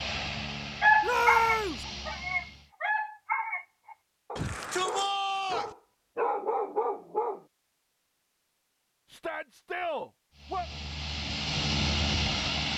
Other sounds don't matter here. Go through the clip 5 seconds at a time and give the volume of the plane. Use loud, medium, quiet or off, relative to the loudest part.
medium, off, loud.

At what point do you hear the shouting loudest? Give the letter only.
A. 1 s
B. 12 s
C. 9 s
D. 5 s
A.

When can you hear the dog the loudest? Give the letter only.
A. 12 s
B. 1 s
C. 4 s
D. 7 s
B.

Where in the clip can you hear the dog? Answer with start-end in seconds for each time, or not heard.
0.8-7.4.